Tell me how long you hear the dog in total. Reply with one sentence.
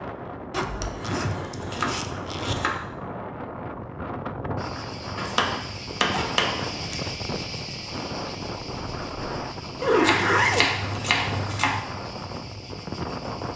You can't hear the dog here.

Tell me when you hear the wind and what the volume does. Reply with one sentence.
The wind can be heard from 0.0 to 13.5 s, at a steady volume.